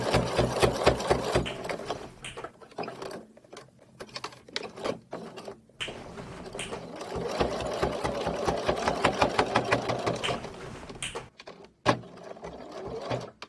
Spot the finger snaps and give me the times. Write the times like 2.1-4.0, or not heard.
1.4-2.5, 5.8-6.8, 10.2-11.3.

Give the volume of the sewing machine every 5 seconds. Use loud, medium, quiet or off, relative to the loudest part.
loud, loud, medium.